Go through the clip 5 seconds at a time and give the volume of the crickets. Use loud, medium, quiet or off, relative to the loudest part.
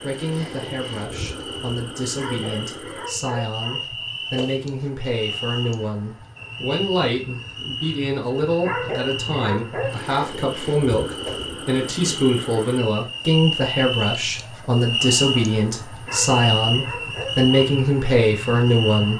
medium, medium, loud, loud.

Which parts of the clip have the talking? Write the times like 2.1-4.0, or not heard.
0.0-19.1.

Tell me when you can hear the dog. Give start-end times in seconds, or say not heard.
2.1-3.9, 8.6-10.1, 16.1-17.7.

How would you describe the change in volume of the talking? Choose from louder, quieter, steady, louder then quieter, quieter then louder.
louder.